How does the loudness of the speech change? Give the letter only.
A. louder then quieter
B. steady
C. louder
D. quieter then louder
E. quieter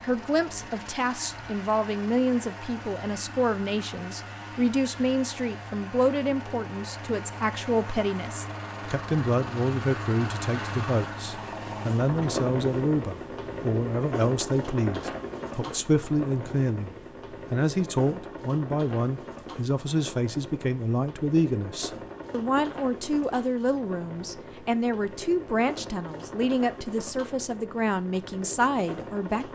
B.